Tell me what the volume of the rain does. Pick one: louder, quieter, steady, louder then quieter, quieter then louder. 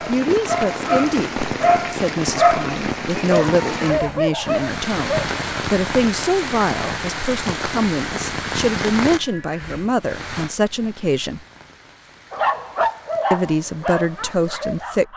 quieter.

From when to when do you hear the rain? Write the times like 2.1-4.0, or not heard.
0.0-15.1.